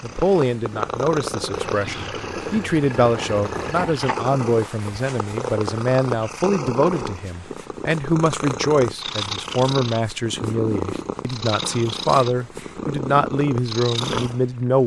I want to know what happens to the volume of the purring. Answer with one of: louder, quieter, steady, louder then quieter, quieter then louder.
steady.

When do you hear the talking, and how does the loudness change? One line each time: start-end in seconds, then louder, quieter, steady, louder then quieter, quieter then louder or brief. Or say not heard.
0.0-14.8 steady.